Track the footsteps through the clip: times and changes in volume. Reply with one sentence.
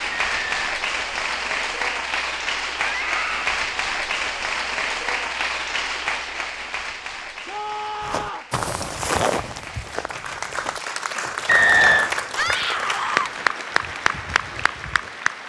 You can hear the footsteps from 8.0 to 15.1 s, getting quieter.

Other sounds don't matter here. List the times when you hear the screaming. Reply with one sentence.
You can hear the screaming from 2.8 to 3.5 s, from 7.5 to 8.5 s and from 12.3 to 13.3 s.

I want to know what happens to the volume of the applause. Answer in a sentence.
The volume of the applause goes down, then up.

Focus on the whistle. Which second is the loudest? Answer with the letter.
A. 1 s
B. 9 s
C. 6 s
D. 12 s
D.